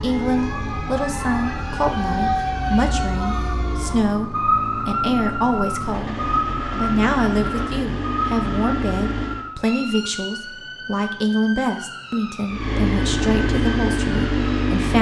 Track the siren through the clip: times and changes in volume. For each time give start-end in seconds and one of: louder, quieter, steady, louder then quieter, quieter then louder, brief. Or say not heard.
0.0-14.8 quieter.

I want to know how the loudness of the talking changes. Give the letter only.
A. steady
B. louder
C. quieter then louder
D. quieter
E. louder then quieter
A.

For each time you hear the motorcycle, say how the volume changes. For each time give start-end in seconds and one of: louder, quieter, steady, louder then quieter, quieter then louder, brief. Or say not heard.
0.0-9.4 louder
12.4-14.9 brief.